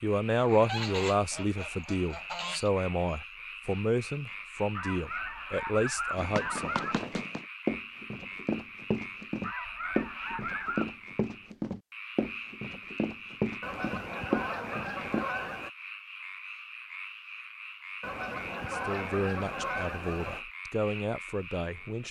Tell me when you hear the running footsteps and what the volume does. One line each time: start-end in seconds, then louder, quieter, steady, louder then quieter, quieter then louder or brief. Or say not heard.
6.2-15.2 steady.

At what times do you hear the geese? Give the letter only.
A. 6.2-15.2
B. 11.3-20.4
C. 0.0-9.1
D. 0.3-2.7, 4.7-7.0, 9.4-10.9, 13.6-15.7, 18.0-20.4
D.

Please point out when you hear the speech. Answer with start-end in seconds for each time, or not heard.
0.0-6.8, 18.7-22.0.